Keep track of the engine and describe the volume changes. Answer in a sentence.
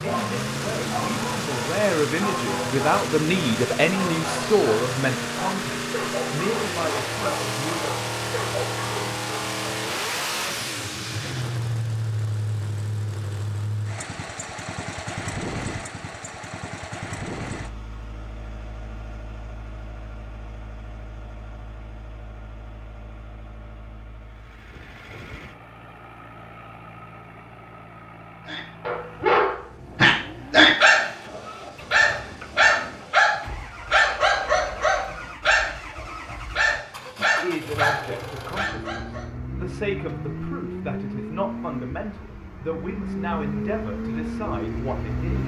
The volume of the engine goes down, then up.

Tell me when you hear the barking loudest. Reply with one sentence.
The volume of the barking peaks at 31 seconds.